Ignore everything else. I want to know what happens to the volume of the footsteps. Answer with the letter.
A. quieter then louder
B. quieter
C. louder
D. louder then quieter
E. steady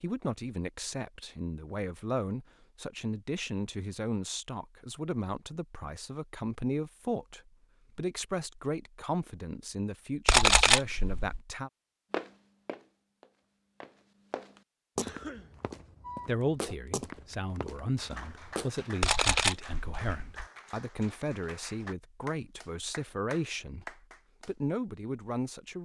D.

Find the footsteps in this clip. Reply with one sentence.
The footsteps can be heard from 12.1 to 18.9 s.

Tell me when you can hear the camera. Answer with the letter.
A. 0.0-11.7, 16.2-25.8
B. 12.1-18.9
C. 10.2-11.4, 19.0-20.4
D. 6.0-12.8
C.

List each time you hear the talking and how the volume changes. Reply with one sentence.
The talking can be heard from 0.0 to 11.7 s, at a steady volume; and from 16.2 to 25.8 s, at a steady volume.